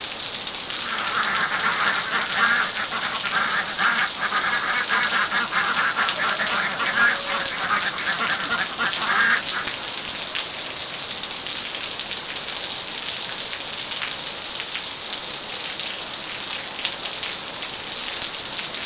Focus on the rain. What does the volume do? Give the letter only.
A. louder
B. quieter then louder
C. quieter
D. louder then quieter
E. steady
E.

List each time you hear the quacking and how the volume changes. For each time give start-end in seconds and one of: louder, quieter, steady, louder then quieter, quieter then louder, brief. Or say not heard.
0.7-9.9 steady.